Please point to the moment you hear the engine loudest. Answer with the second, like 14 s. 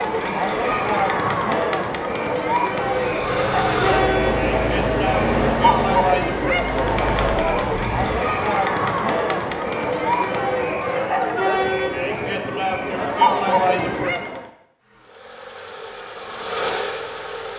5 s.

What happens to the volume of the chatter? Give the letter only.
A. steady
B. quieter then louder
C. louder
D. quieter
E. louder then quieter
A.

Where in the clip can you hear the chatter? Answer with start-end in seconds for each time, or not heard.
0.0-14.5.